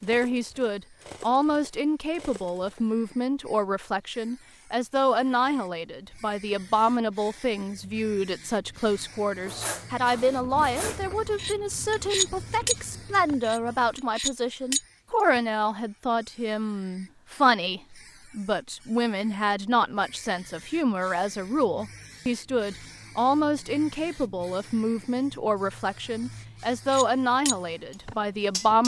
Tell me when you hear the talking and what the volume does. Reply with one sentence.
You can hear the talking from 0.0 to 28.8 s, at a steady volume.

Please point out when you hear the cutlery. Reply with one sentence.
The cutlery can be heard from 0.0 to 2.9 s, from 8.9 to 15.4 s and from 26.9 to 28.8 s.